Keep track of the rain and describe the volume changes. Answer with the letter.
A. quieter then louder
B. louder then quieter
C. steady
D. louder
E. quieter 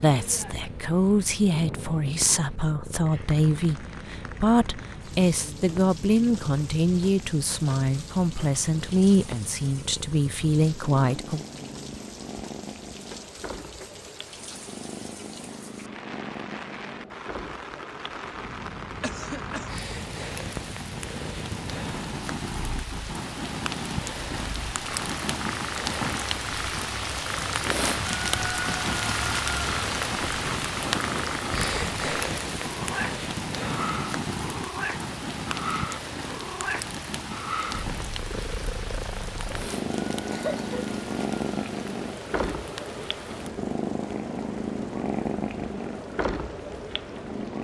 B.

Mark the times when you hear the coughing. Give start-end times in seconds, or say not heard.
19.0-19.7, 40.3-40.8.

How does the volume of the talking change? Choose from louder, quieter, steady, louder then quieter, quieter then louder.
steady.